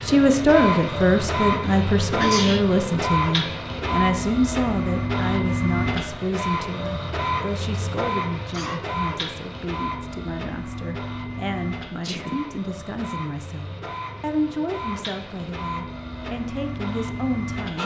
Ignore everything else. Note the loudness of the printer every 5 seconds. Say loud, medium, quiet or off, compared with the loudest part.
loud, loud, medium, medium.